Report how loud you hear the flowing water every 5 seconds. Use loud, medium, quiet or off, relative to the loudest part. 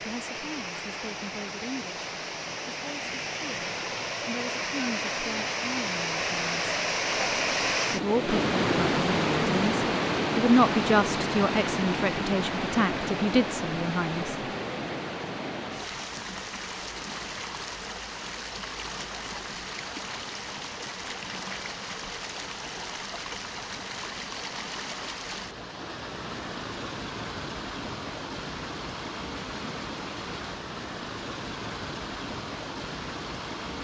medium, loud, loud, medium, medium, medium, medium.